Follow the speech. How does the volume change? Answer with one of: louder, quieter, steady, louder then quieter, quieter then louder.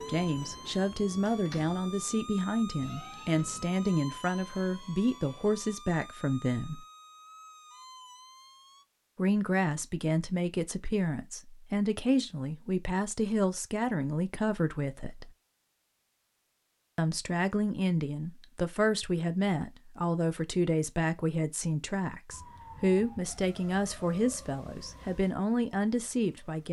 steady.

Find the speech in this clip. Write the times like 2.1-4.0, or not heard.
0.1-6.8, 9.2-15.3, 16.9-26.6.